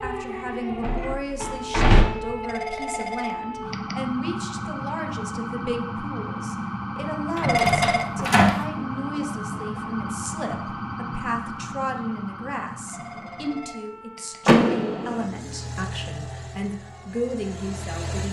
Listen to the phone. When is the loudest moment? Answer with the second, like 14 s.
8 s.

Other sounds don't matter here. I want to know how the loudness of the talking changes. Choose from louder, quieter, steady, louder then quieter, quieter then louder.
steady.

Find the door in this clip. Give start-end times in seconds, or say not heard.
0.8-2.0, 7.3-8.6, 14.4-15.2.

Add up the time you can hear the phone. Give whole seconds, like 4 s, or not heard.
4 s.